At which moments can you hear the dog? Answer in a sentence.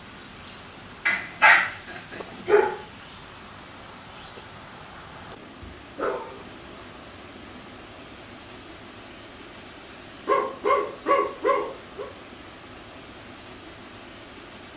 You can hear the dog from 1.1 to 2.8 s, from 5.8 to 7.7 s and from 10.2 to 12.1 s.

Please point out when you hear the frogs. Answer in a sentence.
You can't hear the frogs here.